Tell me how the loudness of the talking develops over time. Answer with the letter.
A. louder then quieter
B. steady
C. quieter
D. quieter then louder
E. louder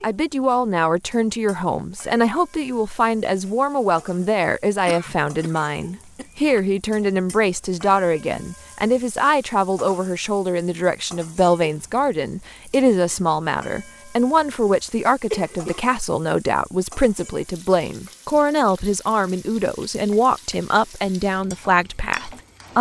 B.